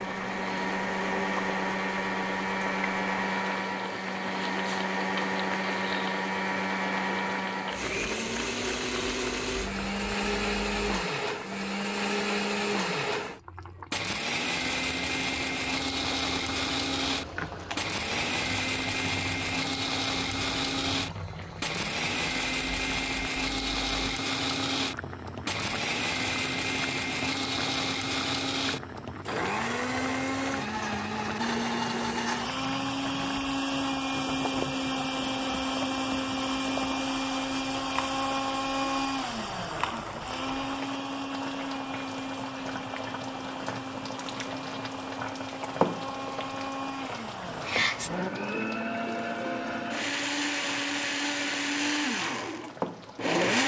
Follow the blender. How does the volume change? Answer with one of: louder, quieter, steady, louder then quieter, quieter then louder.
steady.